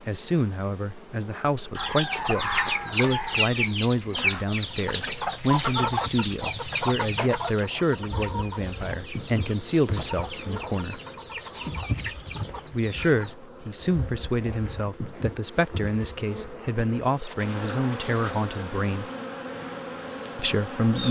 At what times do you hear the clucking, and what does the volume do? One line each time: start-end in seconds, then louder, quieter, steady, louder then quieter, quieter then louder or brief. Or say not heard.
1.8-13.3 quieter.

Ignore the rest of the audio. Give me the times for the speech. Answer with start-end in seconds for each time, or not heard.
0.1-11.0, 12.7-19.1, 20.4-21.0.